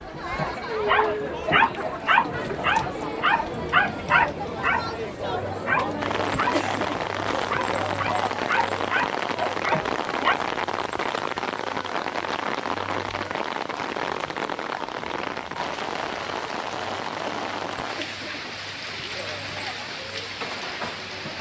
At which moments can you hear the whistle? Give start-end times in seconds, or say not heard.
not heard.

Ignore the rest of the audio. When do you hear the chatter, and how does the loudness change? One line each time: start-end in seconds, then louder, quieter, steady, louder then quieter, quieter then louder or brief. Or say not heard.
0.0-21.3 quieter.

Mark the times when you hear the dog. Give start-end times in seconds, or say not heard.
0.3-10.3.